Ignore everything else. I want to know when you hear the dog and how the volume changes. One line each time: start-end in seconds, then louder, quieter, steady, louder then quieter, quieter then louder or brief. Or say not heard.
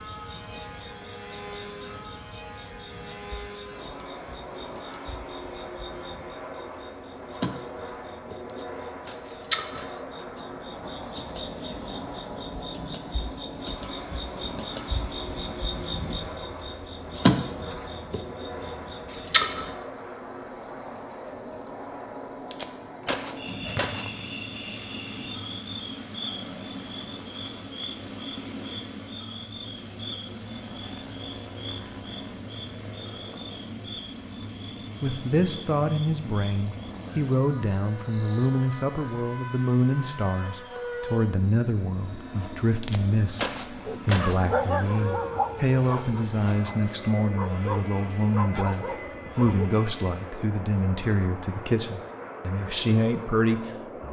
43.8-49.7 quieter then louder.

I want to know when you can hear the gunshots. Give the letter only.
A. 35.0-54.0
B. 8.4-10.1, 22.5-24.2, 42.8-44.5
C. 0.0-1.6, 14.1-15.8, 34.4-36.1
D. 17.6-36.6
B.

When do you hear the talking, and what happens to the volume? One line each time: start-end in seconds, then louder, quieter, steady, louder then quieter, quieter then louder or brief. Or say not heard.
35.0-54.0 steady.